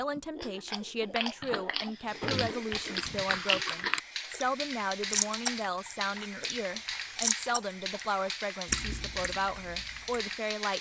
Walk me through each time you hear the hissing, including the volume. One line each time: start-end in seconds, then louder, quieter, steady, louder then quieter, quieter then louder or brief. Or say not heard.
2.0-10.7 steady.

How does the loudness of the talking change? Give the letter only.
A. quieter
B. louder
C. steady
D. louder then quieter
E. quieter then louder
C.